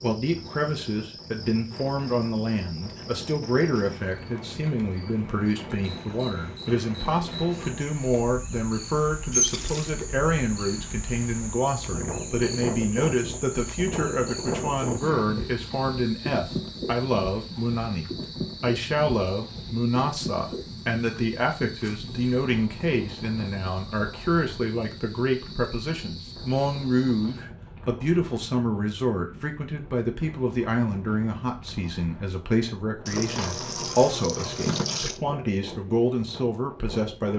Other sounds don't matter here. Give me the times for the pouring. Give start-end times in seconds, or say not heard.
9.3-9.9, 33.0-35.2.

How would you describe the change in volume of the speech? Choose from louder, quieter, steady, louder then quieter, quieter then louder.
steady.